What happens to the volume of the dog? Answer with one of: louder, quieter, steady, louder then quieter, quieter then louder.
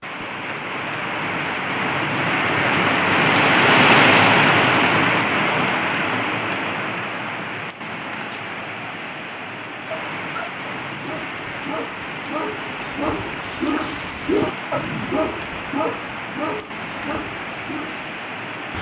louder then quieter.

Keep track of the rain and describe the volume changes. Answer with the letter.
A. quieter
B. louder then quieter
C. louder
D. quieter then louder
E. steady
A.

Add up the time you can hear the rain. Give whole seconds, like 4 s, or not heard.
19 s.